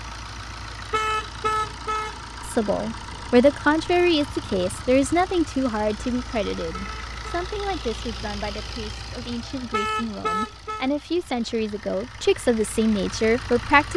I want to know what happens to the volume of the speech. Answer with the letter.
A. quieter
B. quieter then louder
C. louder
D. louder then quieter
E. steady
B.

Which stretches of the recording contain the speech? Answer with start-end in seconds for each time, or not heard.
2.4-13.9.